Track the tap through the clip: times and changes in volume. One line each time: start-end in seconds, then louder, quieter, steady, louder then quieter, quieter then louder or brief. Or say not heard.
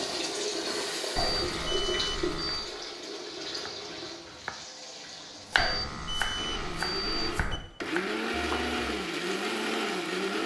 0.0-7.3 quieter.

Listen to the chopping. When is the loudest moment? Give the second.
6 s.